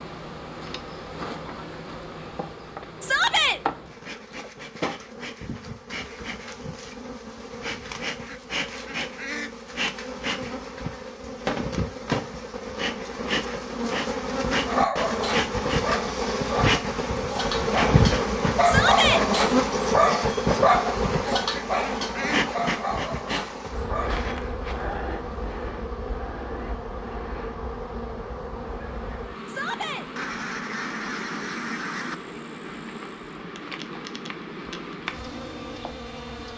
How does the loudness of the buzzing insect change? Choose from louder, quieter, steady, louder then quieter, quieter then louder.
louder then quieter.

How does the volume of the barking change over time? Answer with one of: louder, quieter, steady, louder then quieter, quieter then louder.
louder then quieter.